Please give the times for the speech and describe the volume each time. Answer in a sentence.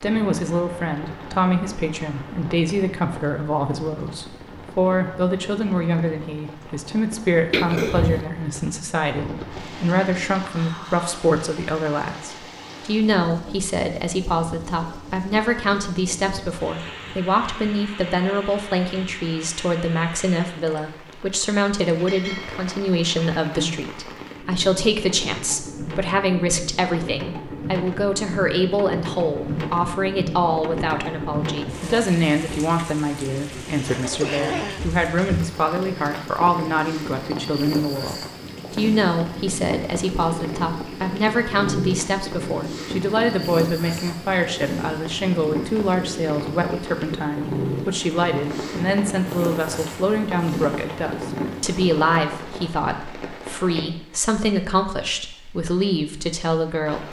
You can hear the speech from 0.0 to 57.0 s, at a steady volume.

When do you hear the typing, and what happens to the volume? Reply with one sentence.
You can't hear the typing here.